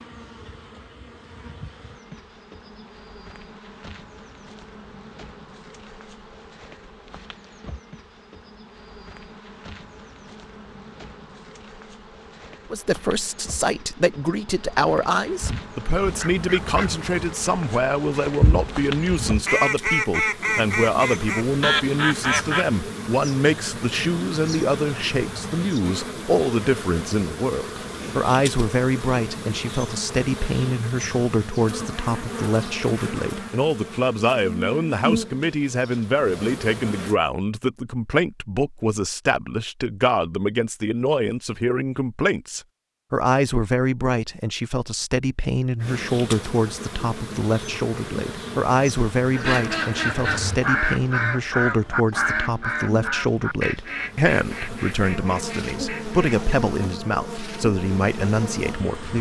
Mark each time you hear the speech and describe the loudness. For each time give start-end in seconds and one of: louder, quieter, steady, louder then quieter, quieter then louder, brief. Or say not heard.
12.7-59.1 steady.